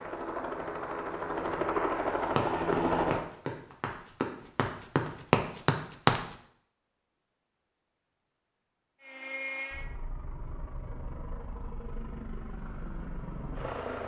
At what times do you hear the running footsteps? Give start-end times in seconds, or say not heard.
2.4-6.2.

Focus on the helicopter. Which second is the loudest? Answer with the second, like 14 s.
3 s.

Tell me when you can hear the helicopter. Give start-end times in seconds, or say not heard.
0.0-3.2, 9.0-14.0.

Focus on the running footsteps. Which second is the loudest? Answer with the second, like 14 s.
6 s.